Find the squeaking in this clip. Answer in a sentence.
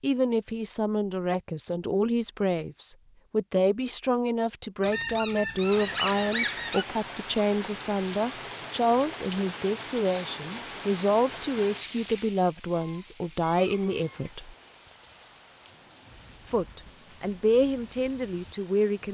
You can hear the squeaking from 4.8 to 6.8 s and from 12.7 to 14.3 s.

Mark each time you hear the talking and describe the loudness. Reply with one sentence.
You can hear the talking from 0.0 to 14.6 s, at a steady volume; and briefly from 16.4 to 19.0 s.